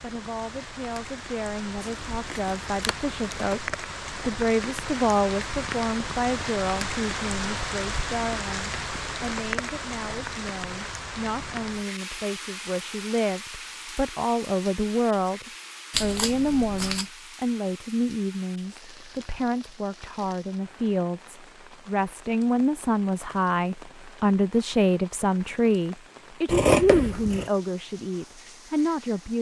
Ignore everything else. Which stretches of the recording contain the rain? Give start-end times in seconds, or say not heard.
0.0-29.3.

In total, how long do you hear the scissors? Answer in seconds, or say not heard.
4 s.